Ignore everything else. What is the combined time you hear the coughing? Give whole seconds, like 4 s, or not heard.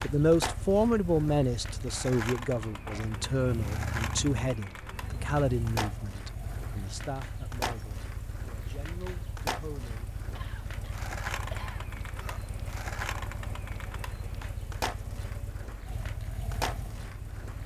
2 s.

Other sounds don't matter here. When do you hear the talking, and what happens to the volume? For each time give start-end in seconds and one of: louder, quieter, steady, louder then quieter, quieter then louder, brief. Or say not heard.
0.0-10.1 quieter.